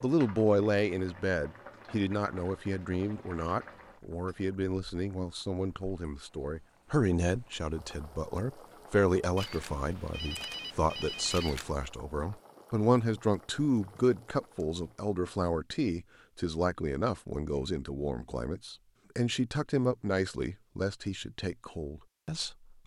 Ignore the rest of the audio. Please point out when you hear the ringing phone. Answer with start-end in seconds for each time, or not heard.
9.3-11.8.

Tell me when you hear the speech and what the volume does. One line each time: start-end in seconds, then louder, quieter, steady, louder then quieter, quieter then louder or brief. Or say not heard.
0.0-22.8 steady.